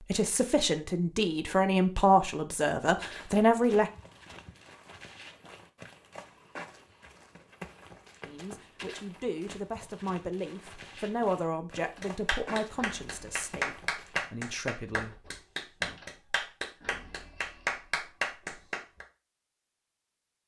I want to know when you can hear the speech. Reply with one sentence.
You can hear the speech from 0.1 to 3.9 s and from 8.2 to 15.2 s.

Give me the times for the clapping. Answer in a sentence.
You can hear the clapping from 11.9 to 19.1 s.